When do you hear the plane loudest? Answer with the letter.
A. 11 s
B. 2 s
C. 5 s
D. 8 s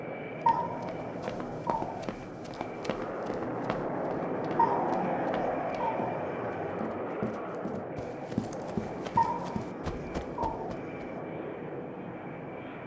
C.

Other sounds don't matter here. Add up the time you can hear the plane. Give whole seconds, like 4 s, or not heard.
13 s.